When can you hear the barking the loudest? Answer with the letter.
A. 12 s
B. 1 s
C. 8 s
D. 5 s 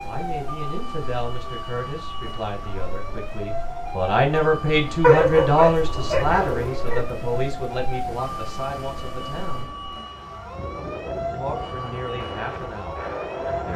D.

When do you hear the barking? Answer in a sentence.
You can hear the barking from 5.0 to 7.0 s.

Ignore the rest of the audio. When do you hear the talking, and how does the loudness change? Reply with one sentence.
You can hear the talking from 0.0 to 9.7 s, getting louder then quieter; and briefly from 11.3 to 13.7 s.